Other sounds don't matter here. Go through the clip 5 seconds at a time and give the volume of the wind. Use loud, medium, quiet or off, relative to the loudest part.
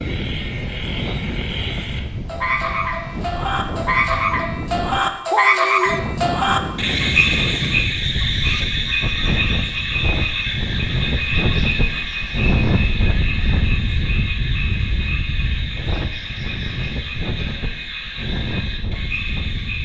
medium, loud, loud, medium.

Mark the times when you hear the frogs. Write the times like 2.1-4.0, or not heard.
0.0-19.7.